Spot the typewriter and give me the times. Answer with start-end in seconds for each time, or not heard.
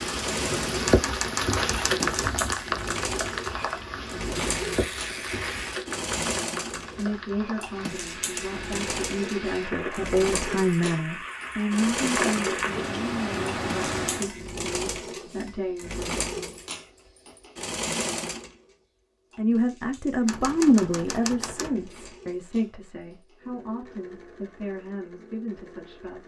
0.8-2.4, 20.2-21.8.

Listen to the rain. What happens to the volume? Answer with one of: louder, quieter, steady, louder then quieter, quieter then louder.
quieter then louder.